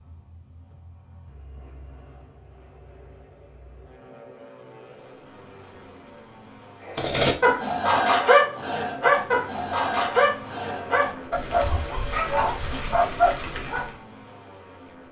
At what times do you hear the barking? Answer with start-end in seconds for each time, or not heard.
6.8-13.9.